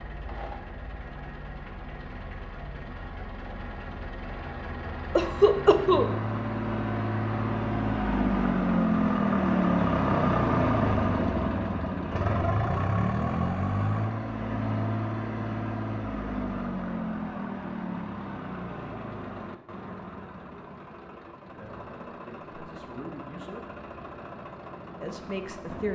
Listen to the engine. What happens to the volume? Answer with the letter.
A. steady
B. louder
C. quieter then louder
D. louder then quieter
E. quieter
D.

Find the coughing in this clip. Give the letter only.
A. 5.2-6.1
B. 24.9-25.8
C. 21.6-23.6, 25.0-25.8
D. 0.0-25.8
A.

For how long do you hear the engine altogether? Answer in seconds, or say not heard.
26 s.